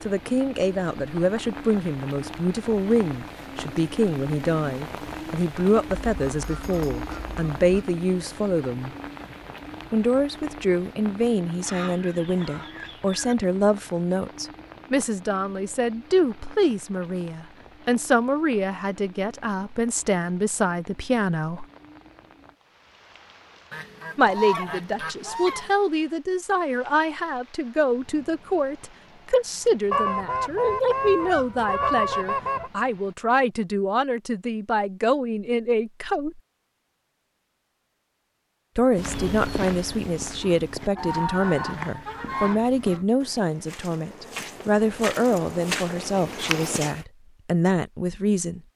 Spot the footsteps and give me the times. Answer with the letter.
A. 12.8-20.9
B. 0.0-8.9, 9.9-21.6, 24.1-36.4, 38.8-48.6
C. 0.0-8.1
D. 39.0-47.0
D.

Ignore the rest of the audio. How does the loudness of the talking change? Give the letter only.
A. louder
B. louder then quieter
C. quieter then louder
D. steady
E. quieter
D.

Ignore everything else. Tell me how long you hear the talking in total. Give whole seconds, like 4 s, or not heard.
43 s.